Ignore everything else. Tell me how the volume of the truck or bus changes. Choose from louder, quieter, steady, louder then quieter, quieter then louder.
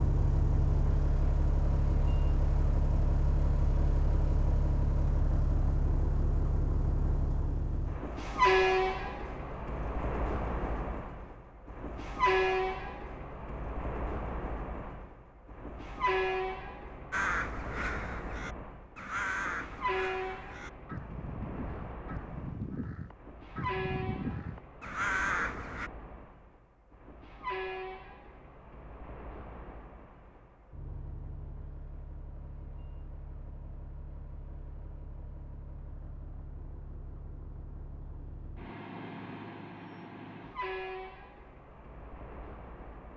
quieter.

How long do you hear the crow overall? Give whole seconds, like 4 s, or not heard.
9 s.